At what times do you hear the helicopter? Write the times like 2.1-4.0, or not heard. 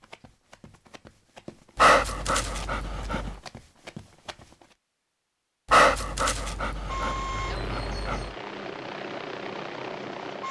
6.8-10.4.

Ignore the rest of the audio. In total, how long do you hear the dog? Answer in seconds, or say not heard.
4 s.